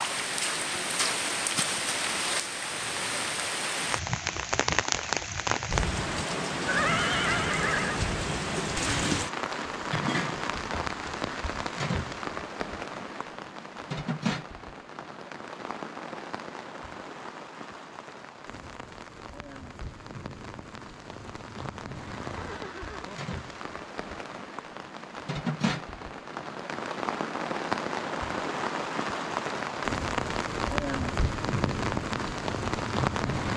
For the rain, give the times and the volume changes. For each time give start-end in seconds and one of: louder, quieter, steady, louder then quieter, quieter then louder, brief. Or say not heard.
0.0-33.5 quieter then louder.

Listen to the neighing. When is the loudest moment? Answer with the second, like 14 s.
7 s.